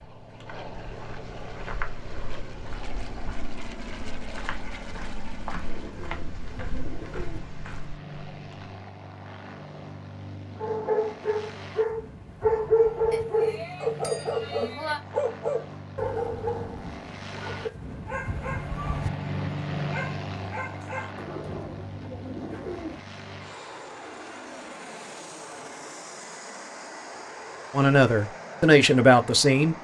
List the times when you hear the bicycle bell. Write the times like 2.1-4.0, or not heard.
13.1-15.0.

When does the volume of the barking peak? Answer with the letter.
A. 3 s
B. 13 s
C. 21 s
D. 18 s
B.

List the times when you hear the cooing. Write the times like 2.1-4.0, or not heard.
5.7-7.5, 21.1-23.1.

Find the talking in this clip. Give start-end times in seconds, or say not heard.
27.7-29.8.